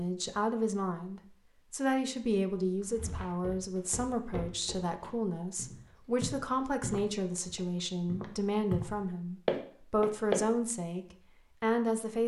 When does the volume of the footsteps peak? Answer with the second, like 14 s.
10 s.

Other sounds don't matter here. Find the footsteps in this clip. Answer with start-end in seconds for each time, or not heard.
2.8-10.4.